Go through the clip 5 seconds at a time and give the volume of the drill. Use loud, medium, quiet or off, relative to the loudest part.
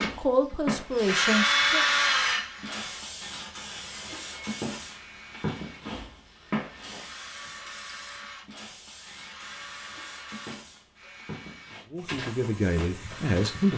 loud, quiet, quiet.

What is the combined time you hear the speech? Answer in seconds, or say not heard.
4 s.